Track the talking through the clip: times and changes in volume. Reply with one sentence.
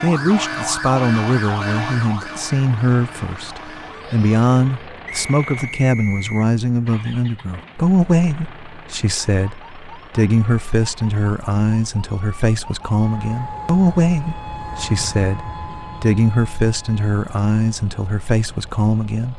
You can hear the talking from 0.0 to 19.3 s, at a steady volume.